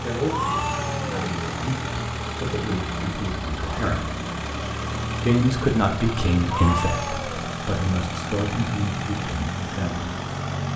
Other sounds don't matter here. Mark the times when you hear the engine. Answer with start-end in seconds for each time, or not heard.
0.0-10.7.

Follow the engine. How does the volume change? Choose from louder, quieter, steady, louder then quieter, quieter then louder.
steady.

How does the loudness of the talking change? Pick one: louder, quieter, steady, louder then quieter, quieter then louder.
louder then quieter.